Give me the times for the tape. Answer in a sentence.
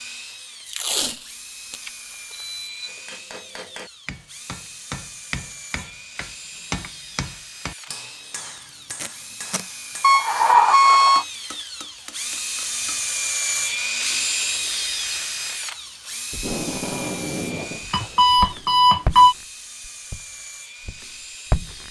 The tape can be heard from 0.7 to 2.4 s, from 8.8 to 9.7 s and from 16.3 to 17.9 s.